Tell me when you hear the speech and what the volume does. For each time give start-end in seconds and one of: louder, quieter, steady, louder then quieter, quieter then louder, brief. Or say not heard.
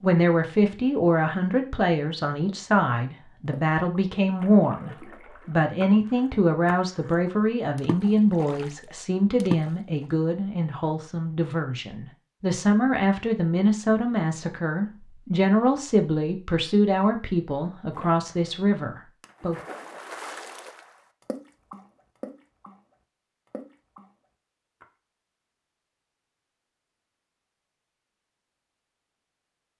0.0-19.6 steady.